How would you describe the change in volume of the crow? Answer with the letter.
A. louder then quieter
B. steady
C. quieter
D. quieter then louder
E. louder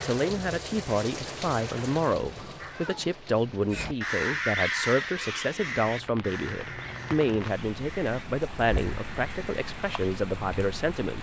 C.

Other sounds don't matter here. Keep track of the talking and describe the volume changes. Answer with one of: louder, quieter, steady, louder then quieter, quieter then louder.
steady.